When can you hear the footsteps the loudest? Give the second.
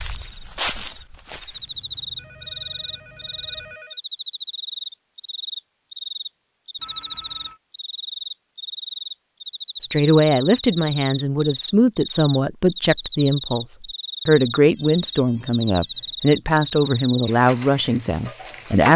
1 s.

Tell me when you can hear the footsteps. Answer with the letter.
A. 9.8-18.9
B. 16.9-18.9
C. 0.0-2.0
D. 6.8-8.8
C.